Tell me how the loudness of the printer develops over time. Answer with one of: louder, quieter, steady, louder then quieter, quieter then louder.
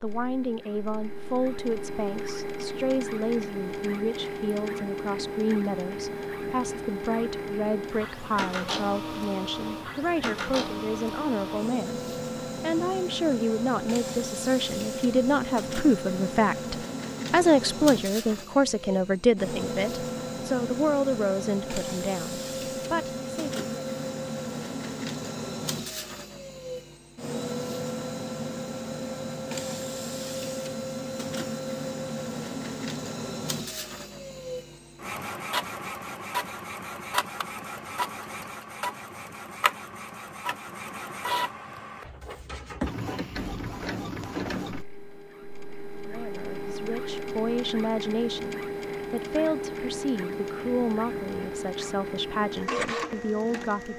steady.